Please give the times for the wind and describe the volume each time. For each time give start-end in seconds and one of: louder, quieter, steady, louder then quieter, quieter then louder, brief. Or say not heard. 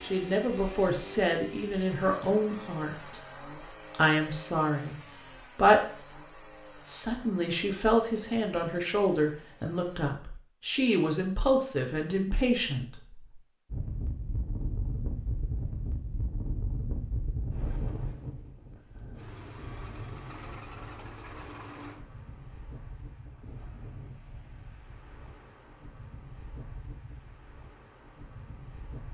13.7-29.0 quieter.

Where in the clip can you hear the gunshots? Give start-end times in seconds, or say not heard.
not heard.